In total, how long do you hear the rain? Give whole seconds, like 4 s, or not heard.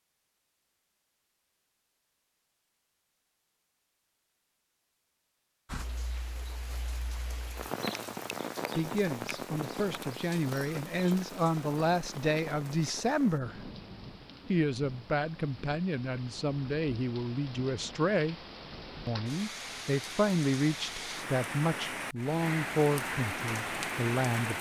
19 s.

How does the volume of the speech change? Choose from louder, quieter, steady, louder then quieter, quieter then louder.
steady.